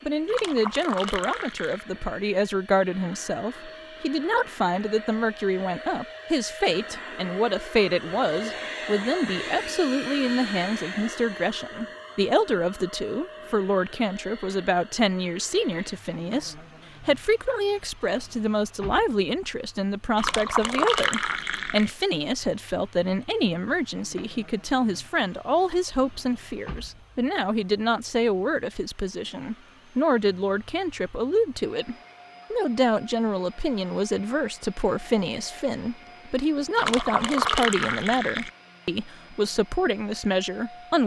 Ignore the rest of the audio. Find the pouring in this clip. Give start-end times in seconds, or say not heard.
0.2-1.9, 20.1-21.9, 36.8-38.5.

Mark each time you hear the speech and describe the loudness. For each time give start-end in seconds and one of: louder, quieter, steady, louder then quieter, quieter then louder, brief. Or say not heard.
0.0-41.0 steady.